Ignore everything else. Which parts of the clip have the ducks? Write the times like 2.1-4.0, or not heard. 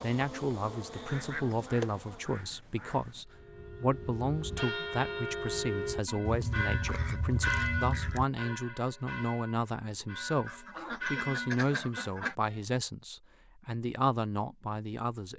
1.1-3.2, 6.2-8.2, 10.4-12.3.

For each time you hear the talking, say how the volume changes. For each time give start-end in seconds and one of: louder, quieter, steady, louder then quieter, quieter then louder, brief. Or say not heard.
0.0-15.3 steady.